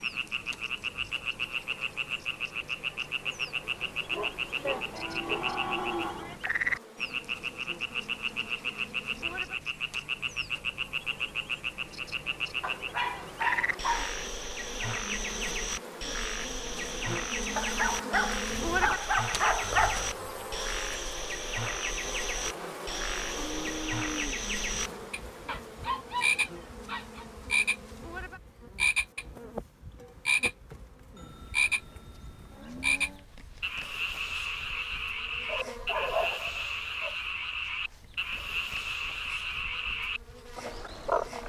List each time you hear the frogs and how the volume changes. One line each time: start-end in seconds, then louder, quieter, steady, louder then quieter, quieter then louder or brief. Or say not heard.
0.0-41.4 steady.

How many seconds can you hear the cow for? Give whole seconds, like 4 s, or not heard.
6 s.